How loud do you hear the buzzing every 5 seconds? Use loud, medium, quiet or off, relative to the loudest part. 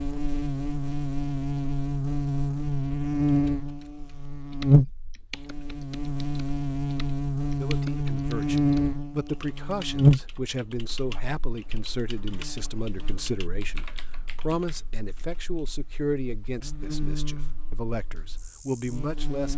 loud, loud, loud, quiet.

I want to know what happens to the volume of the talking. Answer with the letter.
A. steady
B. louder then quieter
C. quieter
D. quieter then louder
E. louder
A.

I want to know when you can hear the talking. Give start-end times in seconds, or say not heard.
7.6-19.5.